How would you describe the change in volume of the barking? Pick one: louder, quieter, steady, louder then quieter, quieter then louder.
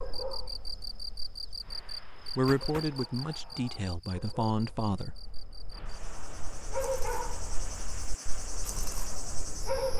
quieter then louder.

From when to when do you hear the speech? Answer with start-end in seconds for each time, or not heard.
2.4-5.2.